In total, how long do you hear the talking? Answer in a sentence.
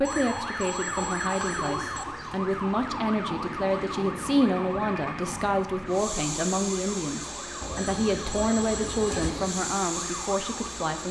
You can hear the talking for 11 seconds altogether.